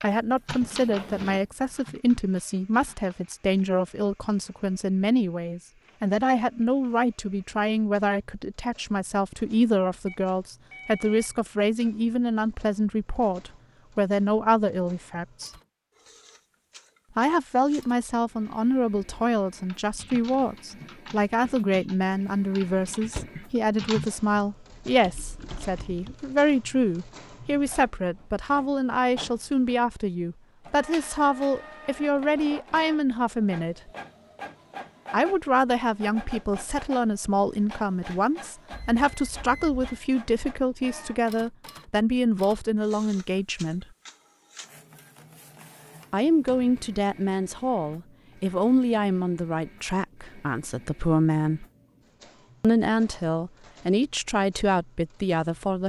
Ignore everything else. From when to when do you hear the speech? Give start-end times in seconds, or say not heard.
0.0-15.5, 17.1-33.9, 35.1-43.9, 46.1-51.6, 52.6-55.8.